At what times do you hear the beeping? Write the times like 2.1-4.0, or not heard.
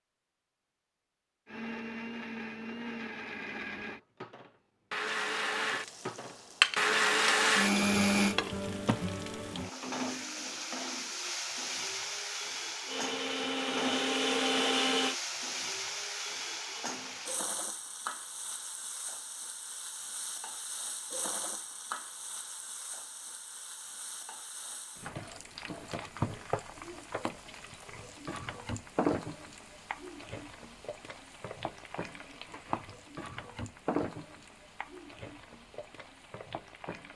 not heard.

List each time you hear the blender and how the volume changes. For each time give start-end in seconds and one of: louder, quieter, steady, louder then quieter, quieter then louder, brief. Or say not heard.
1.4-8.3 louder
12.8-15.2 brief.